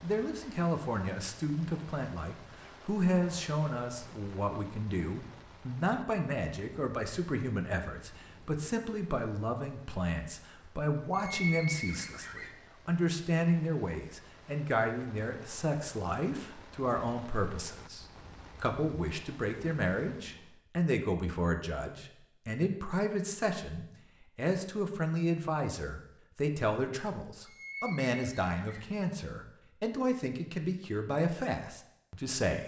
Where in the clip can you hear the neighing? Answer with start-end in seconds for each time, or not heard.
11.1-12.5, 27.4-28.9.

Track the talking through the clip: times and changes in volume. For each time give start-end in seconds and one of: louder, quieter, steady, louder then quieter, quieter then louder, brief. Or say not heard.
0.0-32.6 steady.